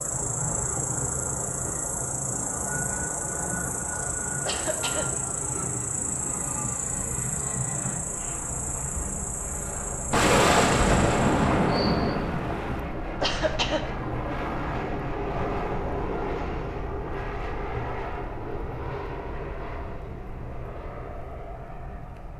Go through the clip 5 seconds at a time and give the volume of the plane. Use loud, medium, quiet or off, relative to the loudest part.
medium, medium, loud, loud, medium.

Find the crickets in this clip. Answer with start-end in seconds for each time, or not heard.
0.0-12.2.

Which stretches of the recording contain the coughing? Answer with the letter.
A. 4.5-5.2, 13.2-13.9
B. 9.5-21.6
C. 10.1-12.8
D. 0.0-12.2
A.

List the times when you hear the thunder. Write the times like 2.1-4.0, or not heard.
10.1-12.8.